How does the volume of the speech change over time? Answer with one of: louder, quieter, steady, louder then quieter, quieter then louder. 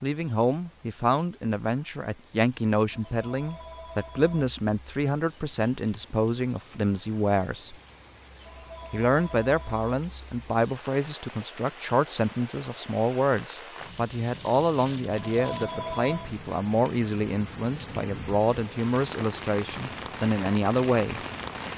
steady.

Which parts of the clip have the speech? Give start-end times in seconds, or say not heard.
0.0-7.8, 8.9-21.2.